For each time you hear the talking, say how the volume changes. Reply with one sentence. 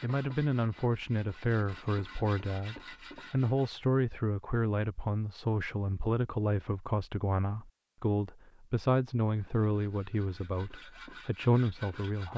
The talking can be heard from 0.0 to 12.3 s, at a steady volume.